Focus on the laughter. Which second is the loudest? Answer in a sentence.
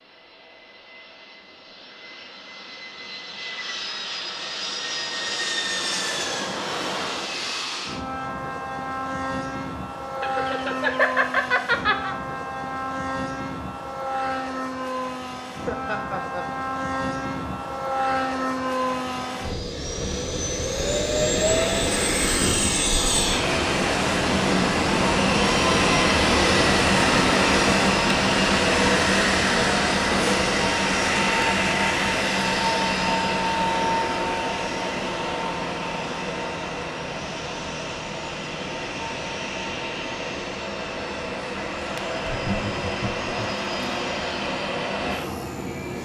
The loudest moment of the laughter is at 11 seconds.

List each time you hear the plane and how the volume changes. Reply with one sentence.
You can hear the plane from 0.0 to 46.0 s, getting louder then quieter.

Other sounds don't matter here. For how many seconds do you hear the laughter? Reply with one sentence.
The laughter can be heard for 4 seconds in total.